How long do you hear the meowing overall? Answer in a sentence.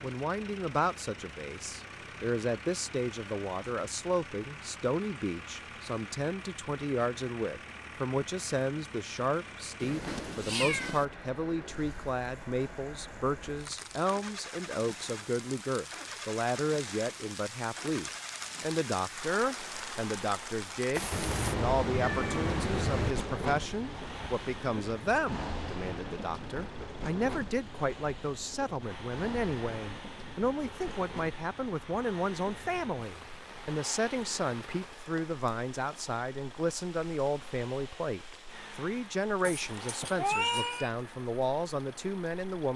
The meowing can be heard for 5 seconds in total.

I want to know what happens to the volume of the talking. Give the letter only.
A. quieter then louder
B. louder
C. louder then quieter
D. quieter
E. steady
E.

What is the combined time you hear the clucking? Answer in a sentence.
You can't hear the clucking here.